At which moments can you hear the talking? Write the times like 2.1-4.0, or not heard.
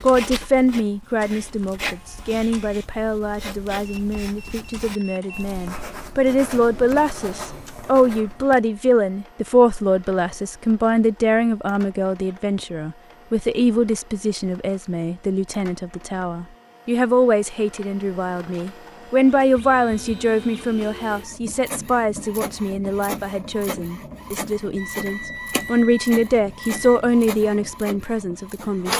0.0-28.9.